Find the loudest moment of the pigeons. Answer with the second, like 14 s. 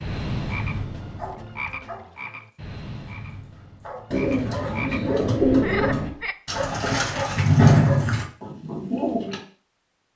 8 s.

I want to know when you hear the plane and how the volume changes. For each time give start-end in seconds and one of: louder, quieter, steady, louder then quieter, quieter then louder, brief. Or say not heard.
not heard.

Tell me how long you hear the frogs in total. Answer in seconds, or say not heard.
6 s.